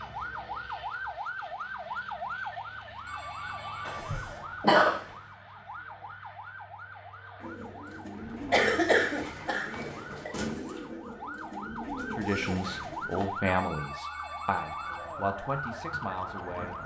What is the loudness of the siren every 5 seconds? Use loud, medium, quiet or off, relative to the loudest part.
loud, medium, loud, loud.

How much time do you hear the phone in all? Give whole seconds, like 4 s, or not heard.
3 s.